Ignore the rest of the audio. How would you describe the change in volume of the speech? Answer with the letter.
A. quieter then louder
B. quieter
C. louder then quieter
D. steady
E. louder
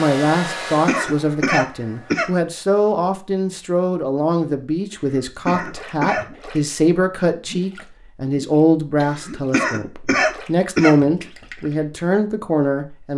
D.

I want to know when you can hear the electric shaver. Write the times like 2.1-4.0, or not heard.
not heard.